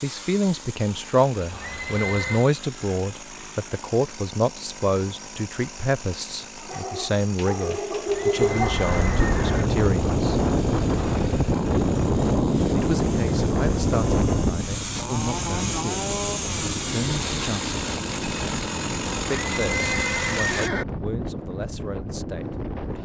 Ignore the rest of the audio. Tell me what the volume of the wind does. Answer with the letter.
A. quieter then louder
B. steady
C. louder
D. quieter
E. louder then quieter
D.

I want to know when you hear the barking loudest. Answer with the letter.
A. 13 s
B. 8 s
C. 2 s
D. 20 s
B.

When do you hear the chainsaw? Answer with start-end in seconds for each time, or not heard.
0.0-20.7.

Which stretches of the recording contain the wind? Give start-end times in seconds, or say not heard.
8.3-23.0.